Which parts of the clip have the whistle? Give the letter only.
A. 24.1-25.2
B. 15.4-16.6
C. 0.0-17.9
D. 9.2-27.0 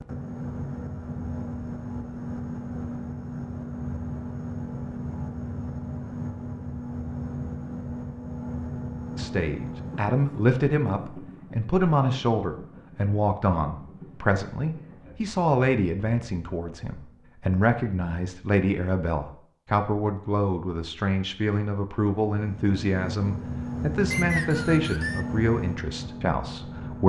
A.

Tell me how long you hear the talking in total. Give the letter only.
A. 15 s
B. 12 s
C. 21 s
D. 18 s
D.